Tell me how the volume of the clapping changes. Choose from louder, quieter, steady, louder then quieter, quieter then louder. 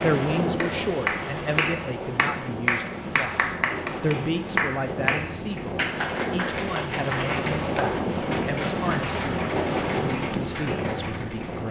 quieter.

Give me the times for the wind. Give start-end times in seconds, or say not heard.
0.0-11.6.